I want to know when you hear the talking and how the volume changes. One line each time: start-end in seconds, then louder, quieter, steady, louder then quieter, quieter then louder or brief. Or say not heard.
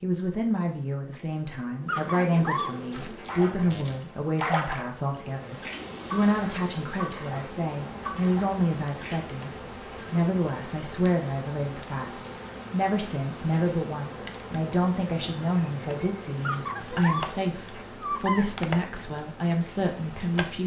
0.0-20.6 steady.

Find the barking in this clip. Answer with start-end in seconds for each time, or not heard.
1.9-3.2, 16.4-18.4.